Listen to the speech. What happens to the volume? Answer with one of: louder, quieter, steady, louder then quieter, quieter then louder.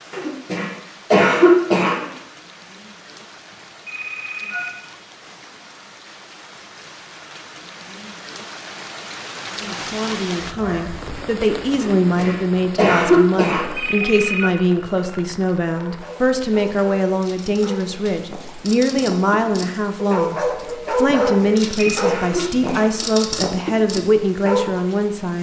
steady.